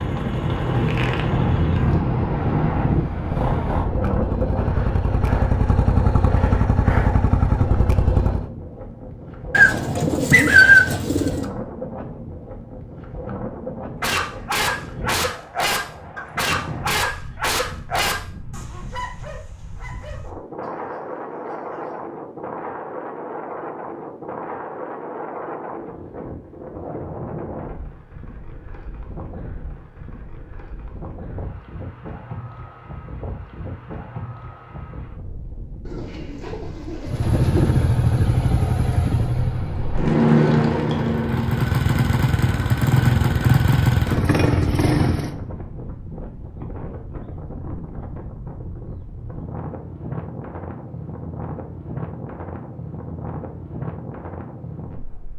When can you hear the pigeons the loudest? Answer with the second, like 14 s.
11 s.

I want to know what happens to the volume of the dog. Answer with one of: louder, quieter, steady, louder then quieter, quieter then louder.
quieter.